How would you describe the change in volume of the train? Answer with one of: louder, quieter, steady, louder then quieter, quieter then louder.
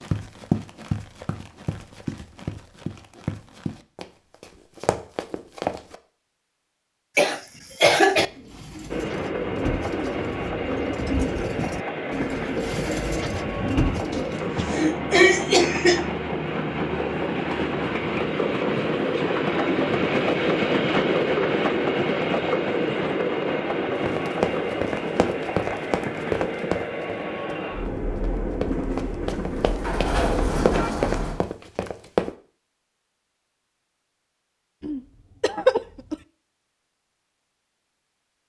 louder then quieter.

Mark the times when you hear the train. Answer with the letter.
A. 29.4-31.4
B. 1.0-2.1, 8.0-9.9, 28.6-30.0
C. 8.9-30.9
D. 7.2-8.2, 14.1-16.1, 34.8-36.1
C.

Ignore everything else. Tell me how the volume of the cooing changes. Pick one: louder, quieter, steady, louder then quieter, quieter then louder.
louder.